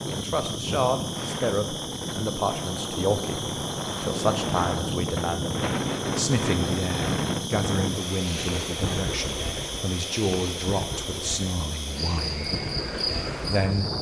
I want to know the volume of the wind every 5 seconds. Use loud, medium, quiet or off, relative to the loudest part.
loud, loud, medium.